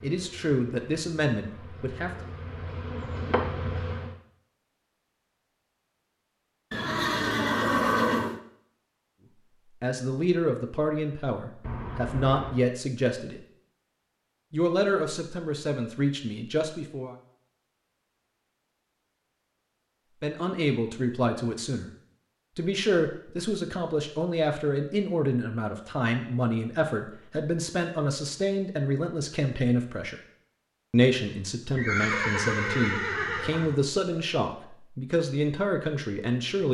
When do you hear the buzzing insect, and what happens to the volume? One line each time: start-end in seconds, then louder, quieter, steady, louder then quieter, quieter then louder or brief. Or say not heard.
0.0-4.2 louder.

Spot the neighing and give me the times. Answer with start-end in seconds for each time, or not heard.
6.7-8.4, 31.8-33.8.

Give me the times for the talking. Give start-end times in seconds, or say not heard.
0.0-2.2, 9.8-13.4, 14.5-17.1, 20.2-21.9, 22.6-30.2, 30.9-36.6.